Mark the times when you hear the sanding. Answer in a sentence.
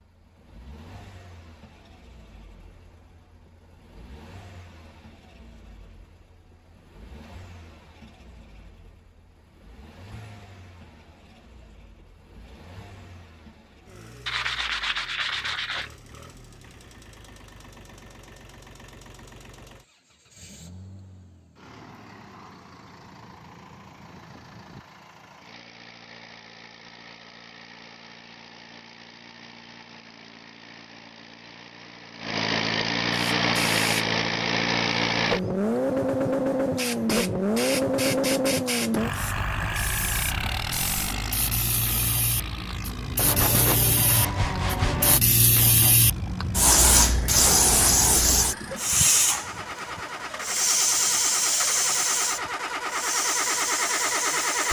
You can hear the sanding from 14.2 to 15.9 s and from 43.1 to 45.2 s.